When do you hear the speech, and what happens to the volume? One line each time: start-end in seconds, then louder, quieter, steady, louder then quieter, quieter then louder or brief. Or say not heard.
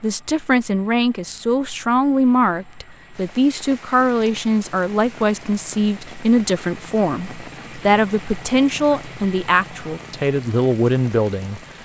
0.0-11.6 steady.